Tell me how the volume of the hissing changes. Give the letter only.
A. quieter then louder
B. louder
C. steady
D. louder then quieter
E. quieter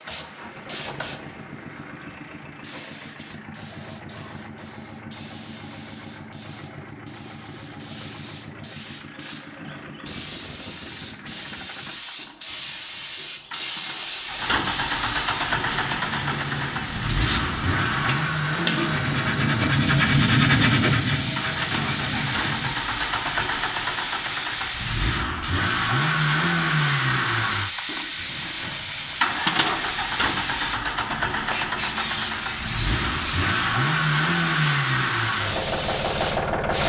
B.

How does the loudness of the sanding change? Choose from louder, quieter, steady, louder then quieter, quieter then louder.
louder then quieter.